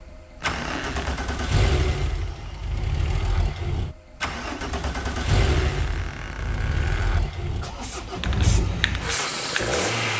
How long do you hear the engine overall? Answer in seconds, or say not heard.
10 s.